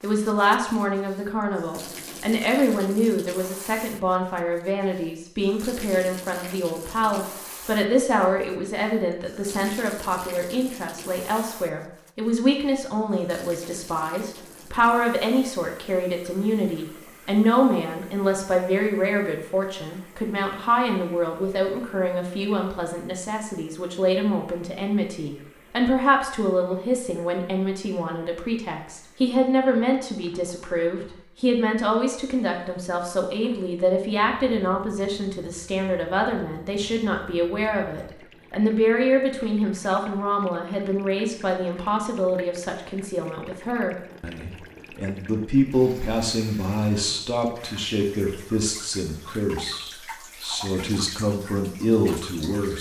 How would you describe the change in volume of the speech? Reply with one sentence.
The volume of the speech stays about the same.